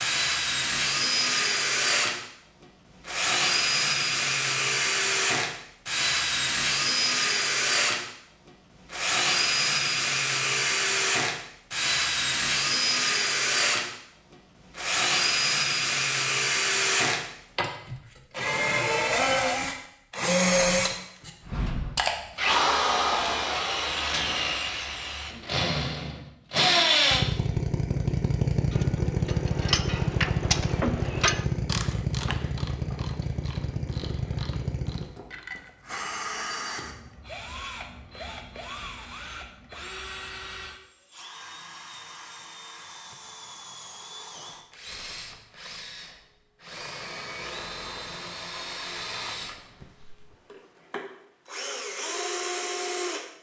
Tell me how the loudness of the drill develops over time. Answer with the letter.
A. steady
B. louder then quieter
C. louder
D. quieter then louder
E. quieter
E.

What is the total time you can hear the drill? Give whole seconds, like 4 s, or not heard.
53 s.